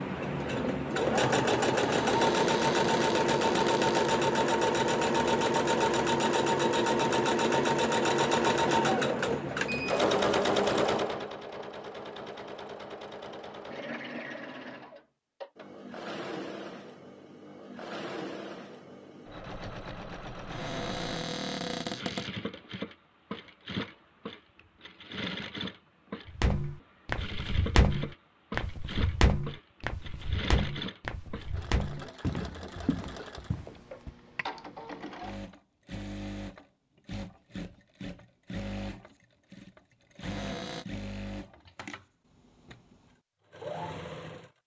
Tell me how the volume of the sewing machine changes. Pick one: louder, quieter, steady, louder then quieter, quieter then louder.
quieter.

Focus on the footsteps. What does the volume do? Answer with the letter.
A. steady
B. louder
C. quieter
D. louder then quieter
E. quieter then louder
C.